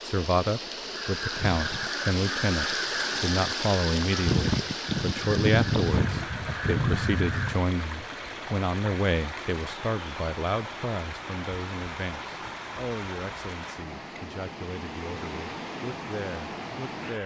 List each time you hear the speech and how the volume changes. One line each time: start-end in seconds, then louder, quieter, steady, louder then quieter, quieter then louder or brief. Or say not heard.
0.0-17.2 quieter.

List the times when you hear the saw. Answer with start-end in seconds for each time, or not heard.
not heard.